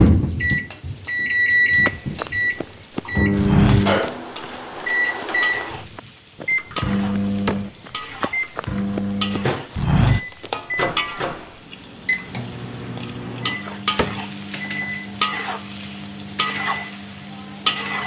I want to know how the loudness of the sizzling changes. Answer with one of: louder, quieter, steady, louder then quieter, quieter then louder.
louder.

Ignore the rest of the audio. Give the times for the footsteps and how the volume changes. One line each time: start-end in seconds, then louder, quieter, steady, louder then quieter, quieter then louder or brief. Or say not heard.
1.8-11.2 quieter then louder.